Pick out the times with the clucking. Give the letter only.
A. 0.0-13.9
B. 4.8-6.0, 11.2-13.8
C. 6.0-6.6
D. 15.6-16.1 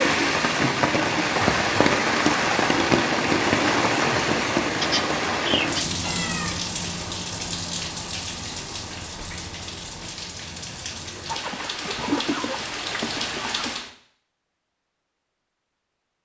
B.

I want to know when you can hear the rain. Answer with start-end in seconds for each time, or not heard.
0.0-13.9.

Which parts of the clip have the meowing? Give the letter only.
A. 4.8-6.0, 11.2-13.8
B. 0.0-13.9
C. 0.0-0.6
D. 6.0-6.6
D.